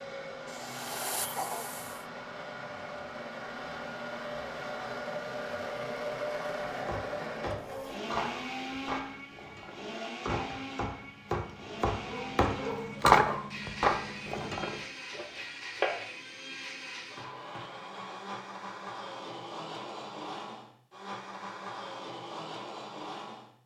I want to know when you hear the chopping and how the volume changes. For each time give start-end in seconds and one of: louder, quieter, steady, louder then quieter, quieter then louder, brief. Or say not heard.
6.8-16.1 louder then quieter.